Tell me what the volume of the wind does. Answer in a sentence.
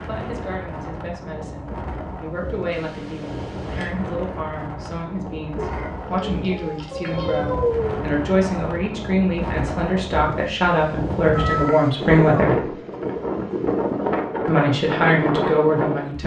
The volume of the wind goes up.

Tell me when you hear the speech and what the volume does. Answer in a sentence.
The speech can be heard from 0.0 to 12.7 s, getting louder; and briefly from 14.4 to 16.2 s.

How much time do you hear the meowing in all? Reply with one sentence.
The meowing can be heard for 5 seconds in total.